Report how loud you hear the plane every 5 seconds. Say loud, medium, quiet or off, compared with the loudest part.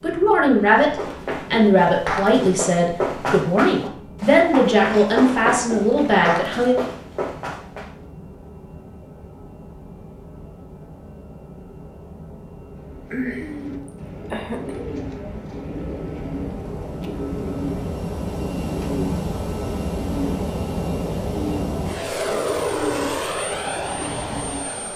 quiet, quiet, quiet, loud, loud.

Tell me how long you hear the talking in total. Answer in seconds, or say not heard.
7 s.